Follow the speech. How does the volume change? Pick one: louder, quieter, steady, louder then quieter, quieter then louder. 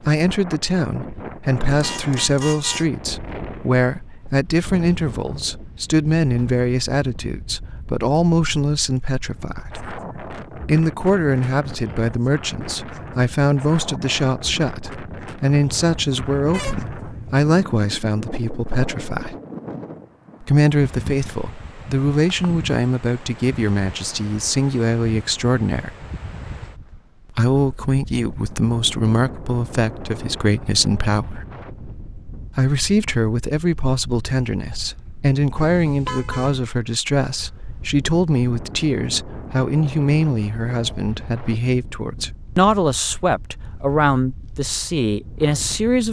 steady.